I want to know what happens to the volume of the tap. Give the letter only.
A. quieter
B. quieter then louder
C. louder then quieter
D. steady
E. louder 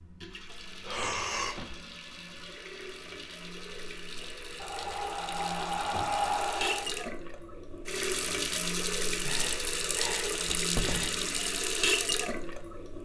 E.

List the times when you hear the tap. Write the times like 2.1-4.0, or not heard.
0.0-12.9.